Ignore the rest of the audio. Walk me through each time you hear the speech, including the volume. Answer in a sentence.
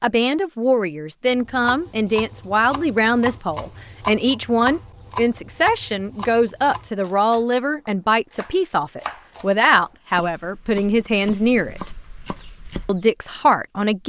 The speech can be heard from 0.0 to 11.9 s, at a steady volume; and briefly from 12.8 to 14.0 s.